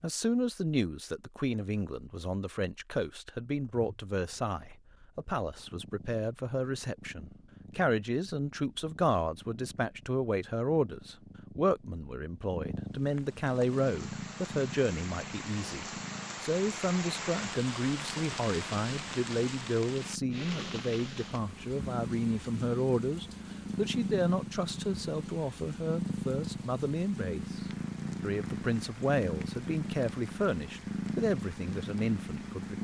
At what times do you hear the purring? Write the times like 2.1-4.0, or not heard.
3.5-32.8.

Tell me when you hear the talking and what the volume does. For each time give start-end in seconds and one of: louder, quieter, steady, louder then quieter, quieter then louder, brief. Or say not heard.
0.0-32.8 steady.